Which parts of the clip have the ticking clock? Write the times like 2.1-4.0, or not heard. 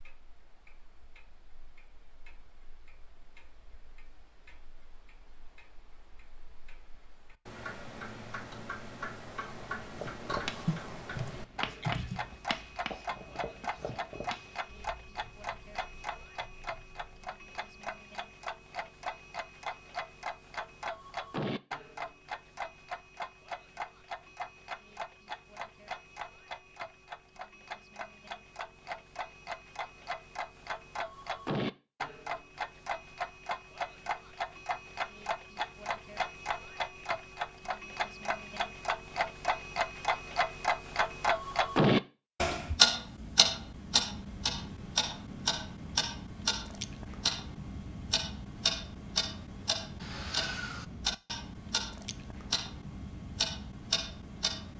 0.0-54.7.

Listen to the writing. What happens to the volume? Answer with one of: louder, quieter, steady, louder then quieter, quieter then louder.
quieter.